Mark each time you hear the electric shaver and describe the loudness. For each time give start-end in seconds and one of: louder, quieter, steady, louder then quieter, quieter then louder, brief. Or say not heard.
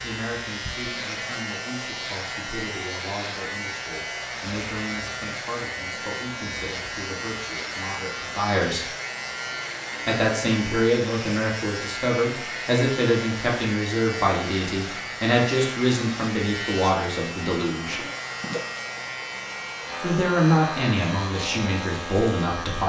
0.0-22.8 steady.